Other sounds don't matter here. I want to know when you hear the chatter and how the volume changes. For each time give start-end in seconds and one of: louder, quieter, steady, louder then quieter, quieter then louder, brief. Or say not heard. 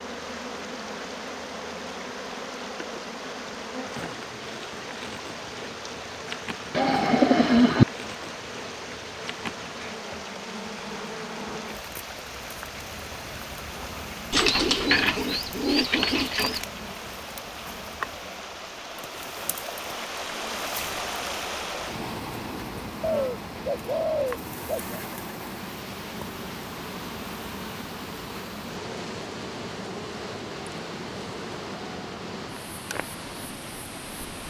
not heard.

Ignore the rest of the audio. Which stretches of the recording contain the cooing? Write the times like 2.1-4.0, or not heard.
6.8-7.8, 14.3-16.6, 23.0-25.0.